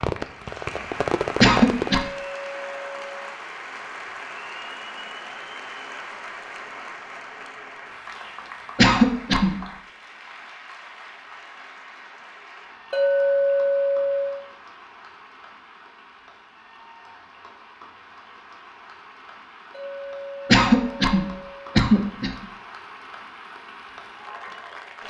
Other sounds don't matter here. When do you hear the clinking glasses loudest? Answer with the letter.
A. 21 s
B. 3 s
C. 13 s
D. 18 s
C.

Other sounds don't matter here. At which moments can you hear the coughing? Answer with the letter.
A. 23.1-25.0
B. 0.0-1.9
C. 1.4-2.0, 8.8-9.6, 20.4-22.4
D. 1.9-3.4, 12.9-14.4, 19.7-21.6
C.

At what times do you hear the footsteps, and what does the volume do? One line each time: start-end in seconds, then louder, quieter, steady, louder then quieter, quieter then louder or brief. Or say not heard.
not heard.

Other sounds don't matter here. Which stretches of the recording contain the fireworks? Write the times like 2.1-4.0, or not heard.
0.0-1.9.